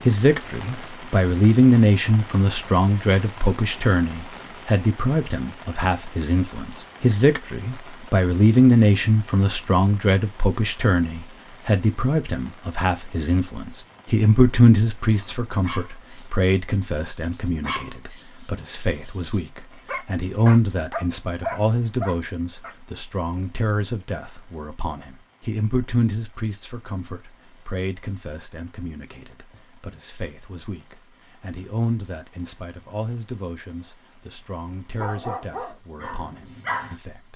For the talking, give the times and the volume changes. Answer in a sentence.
The talking can be heard from 0.1 to 37.3 s, getting quieter.